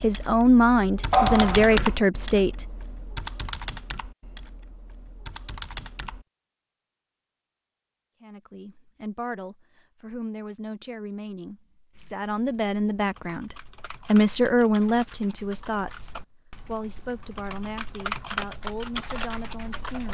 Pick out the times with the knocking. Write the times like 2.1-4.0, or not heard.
1.1-1.9.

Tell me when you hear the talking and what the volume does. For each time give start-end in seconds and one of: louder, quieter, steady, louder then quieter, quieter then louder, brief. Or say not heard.
0.0-2.6 brief
8.2-20.0 louder then quieter.